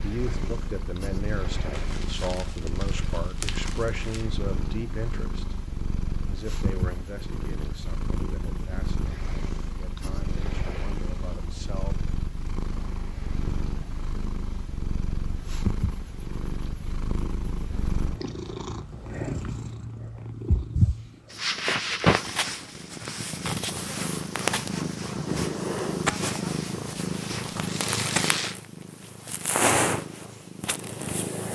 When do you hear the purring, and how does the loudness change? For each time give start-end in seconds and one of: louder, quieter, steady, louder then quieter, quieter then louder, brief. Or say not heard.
0.0-31.5 louder.